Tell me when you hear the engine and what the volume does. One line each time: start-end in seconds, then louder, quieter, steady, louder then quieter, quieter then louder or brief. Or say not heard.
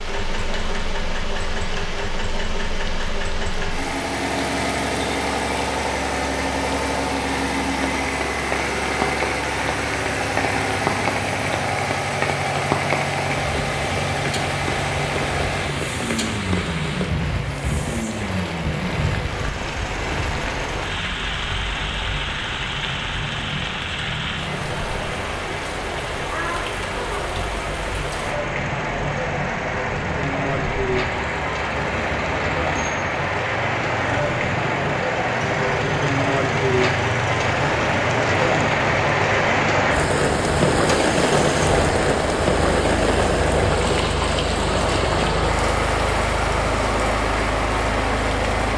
0.0-48.7 quieter then louder.